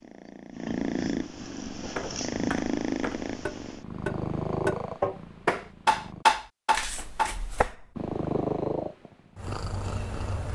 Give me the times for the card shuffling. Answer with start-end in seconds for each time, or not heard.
6.7-7.8.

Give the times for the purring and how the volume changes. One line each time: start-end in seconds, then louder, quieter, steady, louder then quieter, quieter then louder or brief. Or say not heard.
0.0-6.2 quieter
8.0-10.5 brief.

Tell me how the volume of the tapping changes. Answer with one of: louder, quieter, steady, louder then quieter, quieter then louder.
louder then quieter.